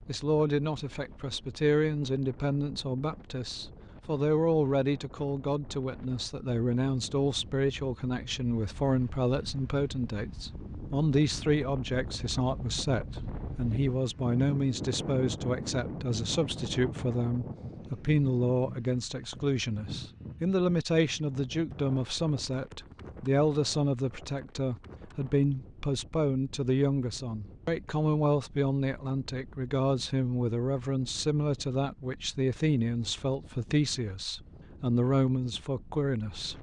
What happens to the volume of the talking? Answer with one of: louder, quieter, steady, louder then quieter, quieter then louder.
steady.